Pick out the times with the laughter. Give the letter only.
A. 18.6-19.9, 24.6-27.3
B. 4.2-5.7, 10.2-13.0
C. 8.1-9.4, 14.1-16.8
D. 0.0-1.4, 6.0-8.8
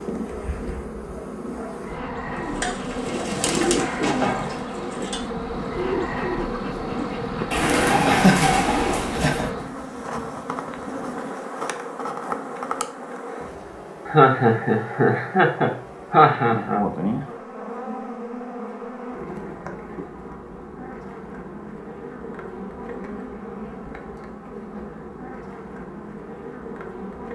C.